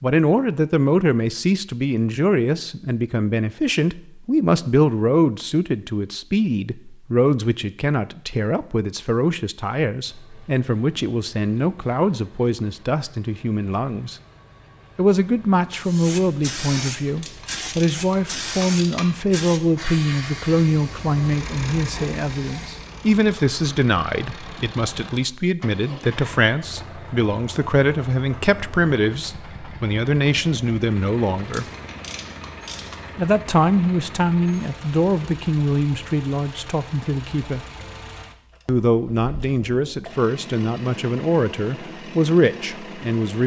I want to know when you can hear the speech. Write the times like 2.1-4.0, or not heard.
0.0-14.2, 14.9-31.6, 33.1-37.6, 38.6-43.4.